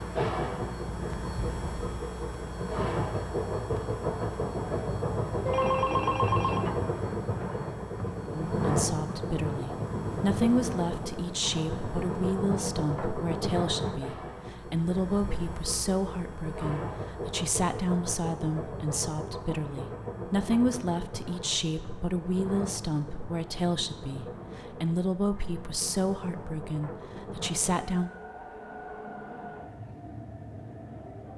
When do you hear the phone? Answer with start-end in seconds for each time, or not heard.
5.5-6.7.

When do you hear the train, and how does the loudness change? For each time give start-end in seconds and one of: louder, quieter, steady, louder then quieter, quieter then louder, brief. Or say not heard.
0.0-31.3 quieter.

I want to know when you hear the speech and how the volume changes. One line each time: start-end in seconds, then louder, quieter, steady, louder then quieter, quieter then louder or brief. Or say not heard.
8.5-28.1 steady.